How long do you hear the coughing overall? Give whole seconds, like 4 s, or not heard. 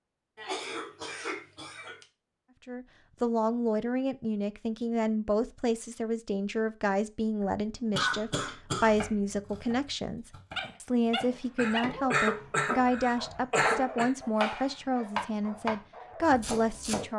7 s.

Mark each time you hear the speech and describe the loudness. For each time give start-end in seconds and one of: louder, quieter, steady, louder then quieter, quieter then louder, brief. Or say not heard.
2.6-17.1 steady.